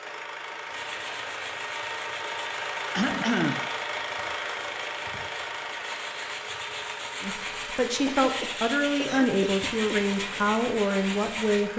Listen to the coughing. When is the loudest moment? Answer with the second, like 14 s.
3 s.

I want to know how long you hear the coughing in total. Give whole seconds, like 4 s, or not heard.
3 s.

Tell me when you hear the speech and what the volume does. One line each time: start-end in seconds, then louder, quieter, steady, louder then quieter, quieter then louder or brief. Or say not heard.
7.2-11.7 steady.